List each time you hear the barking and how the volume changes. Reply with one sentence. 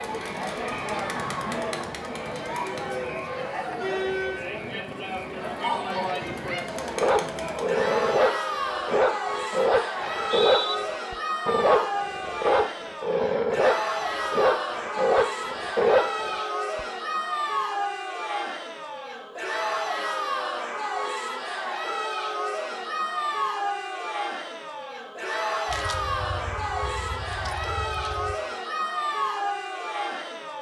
You can hear the barking from 6.8 to 16.9 s, at a steady volume.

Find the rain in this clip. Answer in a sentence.
The rain can't be heard in this clip.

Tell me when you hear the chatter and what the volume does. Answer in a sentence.
The chatter can be heard from 0.0 to 30.5 s, at a steady volume.